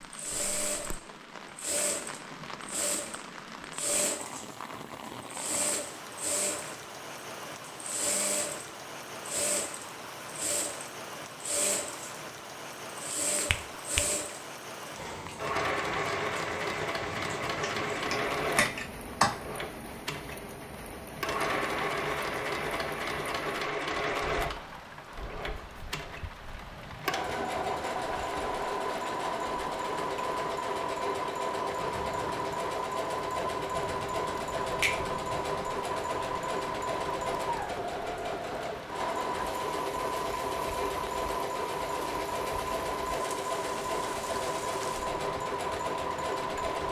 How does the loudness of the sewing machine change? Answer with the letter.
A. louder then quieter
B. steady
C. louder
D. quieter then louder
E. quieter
B.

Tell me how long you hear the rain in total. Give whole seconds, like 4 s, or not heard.
47 s.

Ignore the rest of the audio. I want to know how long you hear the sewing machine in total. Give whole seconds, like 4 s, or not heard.
47 s.